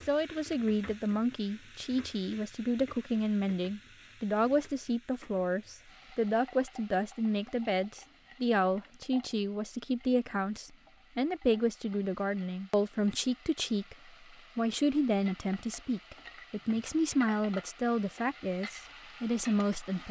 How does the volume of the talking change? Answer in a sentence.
The volume of the talking stays about the same.